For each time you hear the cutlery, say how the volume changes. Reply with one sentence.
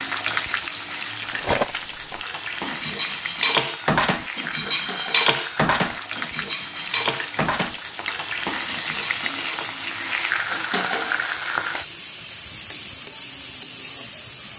You can hear the cutlery from 1.3 to 9.8 s, getting louder then quieter.